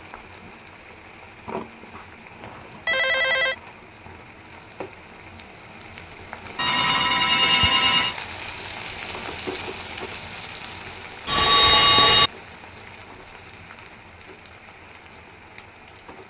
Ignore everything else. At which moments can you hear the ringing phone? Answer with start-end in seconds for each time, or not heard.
2.4-3.5, 6.5-8.2, 11.2-12.3.